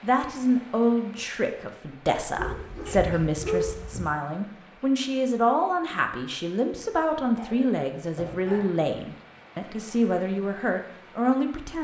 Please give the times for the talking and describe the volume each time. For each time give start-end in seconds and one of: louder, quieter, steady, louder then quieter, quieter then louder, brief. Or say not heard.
0.0-11.8 steady.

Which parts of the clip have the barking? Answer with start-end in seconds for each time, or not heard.
2.4-4.0, 7.3-8.8.